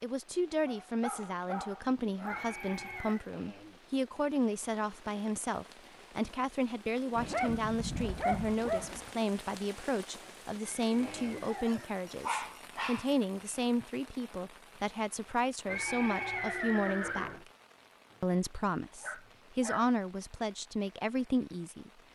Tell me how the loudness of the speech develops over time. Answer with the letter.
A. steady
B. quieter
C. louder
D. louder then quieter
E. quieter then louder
A.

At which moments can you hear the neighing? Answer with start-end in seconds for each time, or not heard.
2.2-3.2, 10.6-12.1, 15.7-17.4.